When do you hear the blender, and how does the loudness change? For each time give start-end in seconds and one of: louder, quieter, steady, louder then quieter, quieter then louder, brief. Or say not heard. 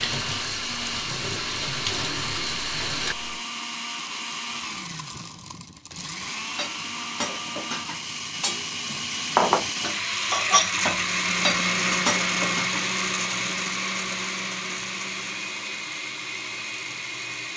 0.0-17.5 louder then quieter.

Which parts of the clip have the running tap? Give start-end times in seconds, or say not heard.
0.0-3.4.